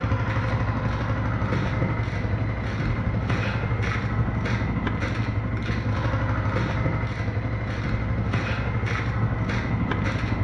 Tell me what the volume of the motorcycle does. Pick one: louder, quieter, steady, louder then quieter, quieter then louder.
steady.